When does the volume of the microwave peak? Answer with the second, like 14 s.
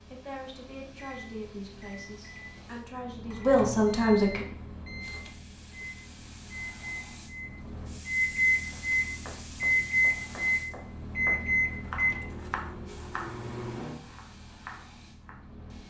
10 s.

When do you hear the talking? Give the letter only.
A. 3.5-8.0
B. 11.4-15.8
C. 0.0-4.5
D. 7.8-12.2
C.